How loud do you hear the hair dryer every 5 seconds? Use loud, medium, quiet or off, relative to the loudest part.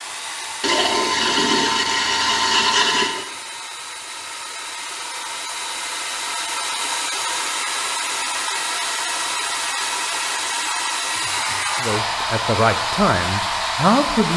medium, loud, loud.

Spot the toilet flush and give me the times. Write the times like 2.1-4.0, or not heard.
0.6-3.2.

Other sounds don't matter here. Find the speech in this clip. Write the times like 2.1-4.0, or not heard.
11.8-14.3.